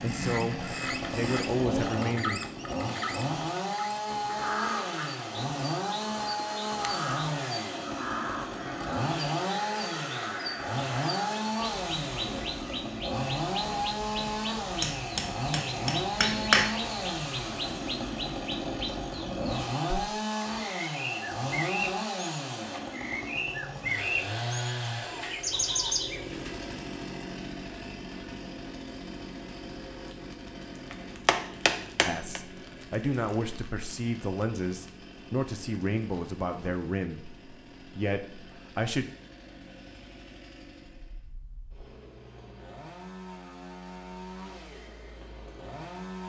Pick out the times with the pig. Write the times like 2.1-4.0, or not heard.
not heard.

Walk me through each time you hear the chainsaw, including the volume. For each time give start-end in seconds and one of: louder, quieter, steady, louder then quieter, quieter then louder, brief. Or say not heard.
0.0-46.2 quieter.